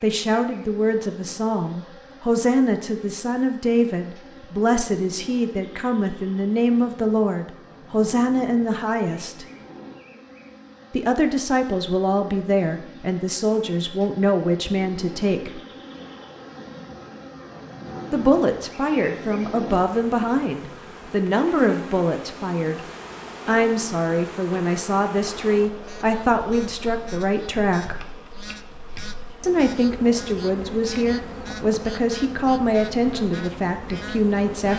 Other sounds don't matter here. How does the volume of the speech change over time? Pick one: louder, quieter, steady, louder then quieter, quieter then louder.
steady.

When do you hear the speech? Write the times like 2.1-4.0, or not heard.
0.0-9.4, 10.9-15.6, 18.1-22.8, 23.4-28.0, 29.4-34.7.